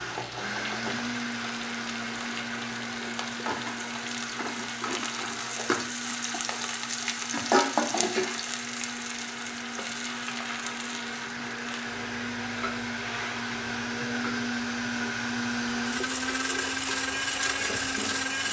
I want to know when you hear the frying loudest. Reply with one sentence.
The volume of the frying peaks at 8 seconds.